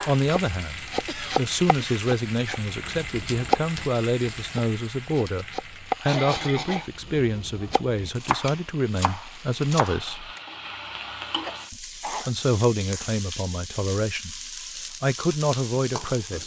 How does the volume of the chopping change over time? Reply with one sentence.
The volume of the chopping goes down, then up.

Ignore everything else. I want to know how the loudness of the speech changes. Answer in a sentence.
The loudness of the speech stays about the same.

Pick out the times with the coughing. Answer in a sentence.
You can hear the coughing from 1.1 to 2.0 s, from 6.0 to 6.9 s and from 11.1 to 12.3 s.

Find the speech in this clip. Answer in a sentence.
You can hear the speech from 0.1 to 10.3 s and from 11.7 to 16.4 s.